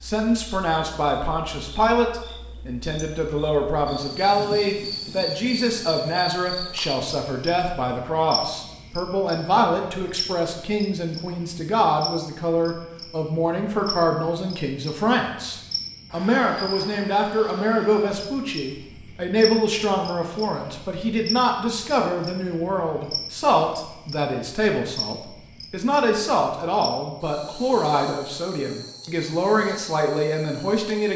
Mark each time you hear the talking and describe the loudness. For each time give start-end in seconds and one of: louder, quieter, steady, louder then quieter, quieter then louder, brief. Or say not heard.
0.0-31.1 steady.